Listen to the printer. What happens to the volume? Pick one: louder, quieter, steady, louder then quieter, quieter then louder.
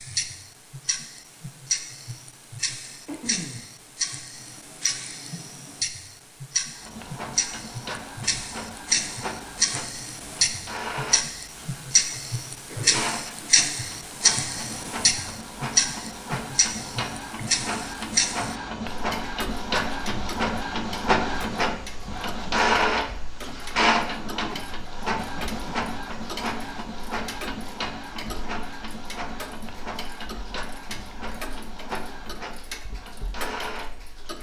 louder then quieter.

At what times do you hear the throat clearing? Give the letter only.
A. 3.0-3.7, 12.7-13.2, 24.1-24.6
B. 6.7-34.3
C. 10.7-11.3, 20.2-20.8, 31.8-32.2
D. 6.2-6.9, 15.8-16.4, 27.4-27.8
A.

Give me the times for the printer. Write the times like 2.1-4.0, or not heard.
6.7-34.3.